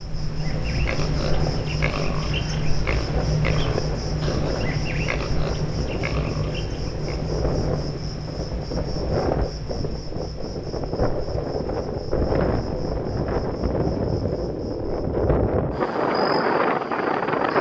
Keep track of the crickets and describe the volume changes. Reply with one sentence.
The volume of the crickets goes down.